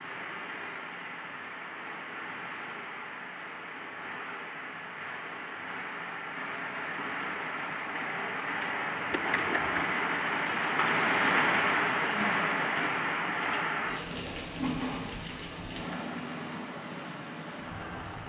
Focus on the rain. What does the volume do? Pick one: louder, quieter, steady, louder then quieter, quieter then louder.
louder then quieter.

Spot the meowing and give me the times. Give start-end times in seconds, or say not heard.
9.1-9.9.